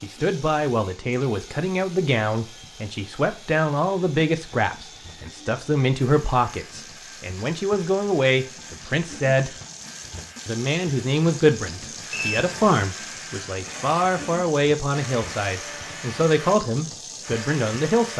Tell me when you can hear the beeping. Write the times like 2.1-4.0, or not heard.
12.1-12.8.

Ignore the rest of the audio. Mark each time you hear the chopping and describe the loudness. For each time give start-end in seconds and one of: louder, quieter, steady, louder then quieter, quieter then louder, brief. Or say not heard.
not heard.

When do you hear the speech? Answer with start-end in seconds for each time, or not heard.
0.0-9.6, 10.4-18.1.